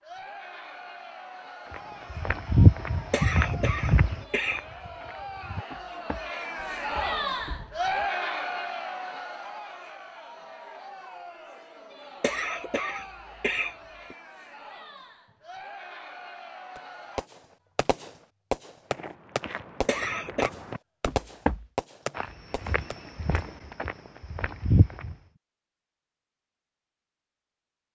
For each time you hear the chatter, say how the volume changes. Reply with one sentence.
The chatter can be heard from 0.0 to 17.3 s, getting louder then quieter.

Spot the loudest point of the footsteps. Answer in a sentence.
The loudest moment of the footsteps is at 3 seconds.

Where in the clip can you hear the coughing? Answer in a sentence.
You can hear the coughing from 3.1 to 4.7 s, from 12.2 to 14.2 s and from 19.9 to 20.5 s.